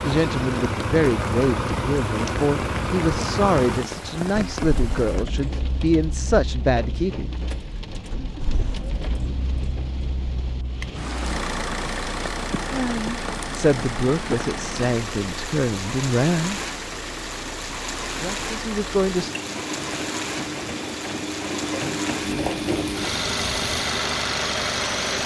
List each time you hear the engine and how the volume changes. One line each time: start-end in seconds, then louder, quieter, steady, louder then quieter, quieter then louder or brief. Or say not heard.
0.0-25.2 quieter then louder.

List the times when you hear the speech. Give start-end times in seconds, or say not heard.
0.0-7.3, 12.7-16.6, 18.1-19.4.